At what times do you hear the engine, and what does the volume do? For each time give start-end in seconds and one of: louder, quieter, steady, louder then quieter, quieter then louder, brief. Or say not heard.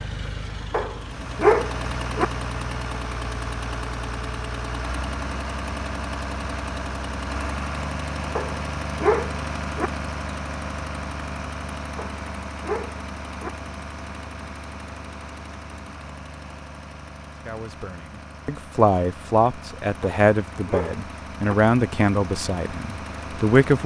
0.0-23.8 quieter.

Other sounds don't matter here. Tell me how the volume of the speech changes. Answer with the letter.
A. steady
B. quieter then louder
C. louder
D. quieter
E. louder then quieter
D.